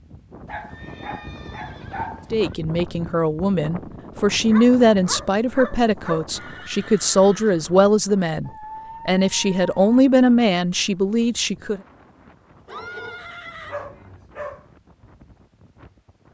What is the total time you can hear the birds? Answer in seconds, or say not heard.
not heard.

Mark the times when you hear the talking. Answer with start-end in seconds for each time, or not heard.
2.3-11.8.